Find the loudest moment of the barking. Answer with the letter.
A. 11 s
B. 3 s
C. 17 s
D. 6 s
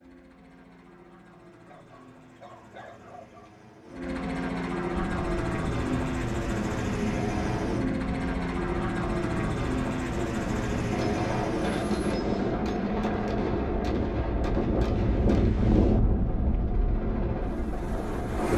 B.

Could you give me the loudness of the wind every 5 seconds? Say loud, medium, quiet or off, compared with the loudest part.
off, medium, loud, loud.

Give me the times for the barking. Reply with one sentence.
You can hear the barking from 1.6 to 3.5 s.